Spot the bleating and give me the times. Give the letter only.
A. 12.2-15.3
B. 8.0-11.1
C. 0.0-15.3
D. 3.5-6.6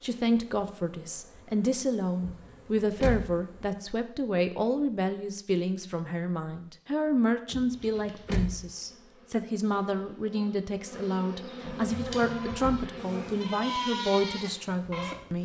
A.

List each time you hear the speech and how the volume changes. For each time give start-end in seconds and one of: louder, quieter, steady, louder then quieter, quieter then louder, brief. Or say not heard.
0.0-15.3 steady.